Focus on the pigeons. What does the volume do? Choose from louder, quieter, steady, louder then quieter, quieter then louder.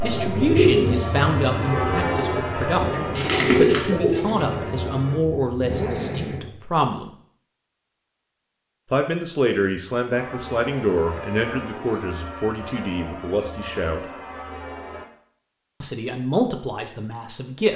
quieter then louder.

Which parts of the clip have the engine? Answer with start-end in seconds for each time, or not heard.
0.0-6.5.